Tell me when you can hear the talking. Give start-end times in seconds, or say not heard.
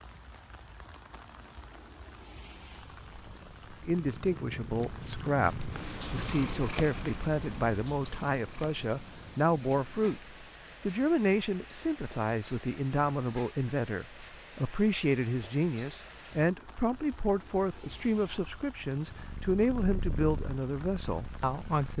3.9-10.2, 10.8-21.9.